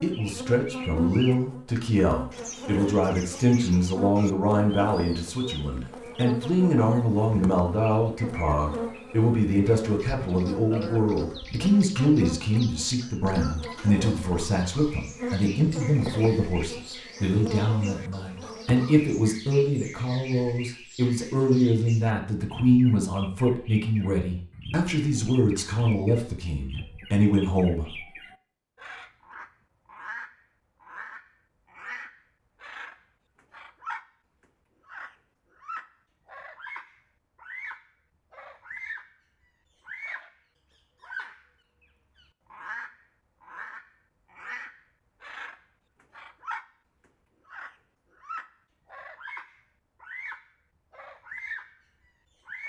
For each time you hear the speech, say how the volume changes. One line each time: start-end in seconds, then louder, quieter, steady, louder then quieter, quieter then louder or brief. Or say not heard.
0.0-27.9 steady.